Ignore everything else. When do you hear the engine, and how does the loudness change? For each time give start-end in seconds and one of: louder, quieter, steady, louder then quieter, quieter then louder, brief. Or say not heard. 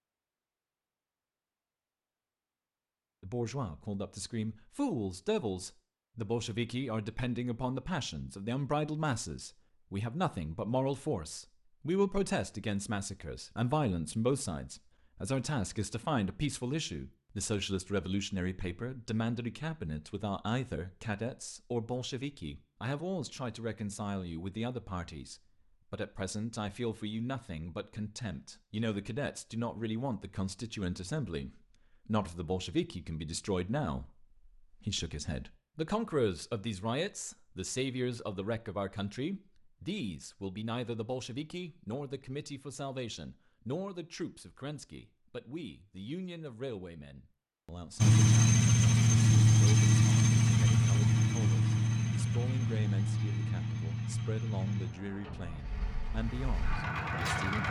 48.0-57.6 quieter.